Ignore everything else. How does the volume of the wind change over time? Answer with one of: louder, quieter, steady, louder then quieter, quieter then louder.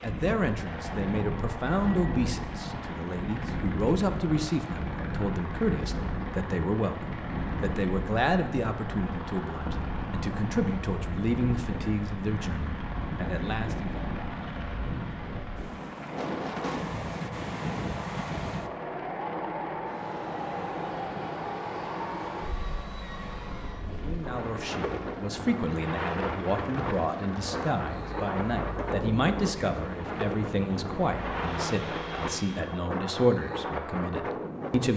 steady.